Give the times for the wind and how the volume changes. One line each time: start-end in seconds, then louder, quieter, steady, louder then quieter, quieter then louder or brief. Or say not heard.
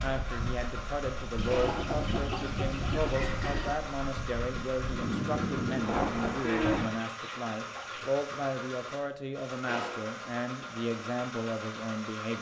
0.0-6.8 louder.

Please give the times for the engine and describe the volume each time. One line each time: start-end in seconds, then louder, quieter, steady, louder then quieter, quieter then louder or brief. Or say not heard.
0.0-12.3 steady.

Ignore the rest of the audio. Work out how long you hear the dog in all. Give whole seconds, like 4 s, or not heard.
not heard.